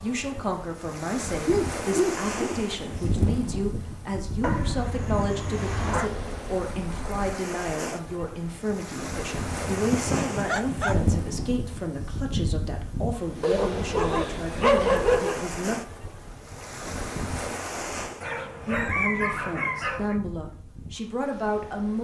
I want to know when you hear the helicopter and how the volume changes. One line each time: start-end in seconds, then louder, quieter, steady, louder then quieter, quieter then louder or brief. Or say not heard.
not heard.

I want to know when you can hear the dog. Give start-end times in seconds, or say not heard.
1.4-2.5, 4.4-6.1, 9.4-11.0, 13.4-15.4, 18.2-20.1.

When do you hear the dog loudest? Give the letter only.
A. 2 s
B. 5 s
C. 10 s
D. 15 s
D.